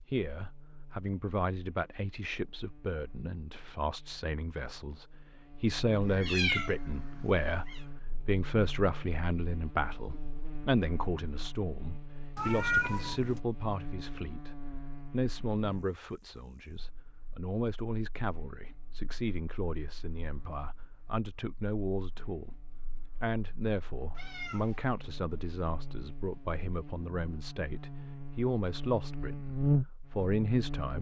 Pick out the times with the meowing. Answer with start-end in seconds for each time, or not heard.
6.1-7.8, 12.3-13.4, 24.1-24.9.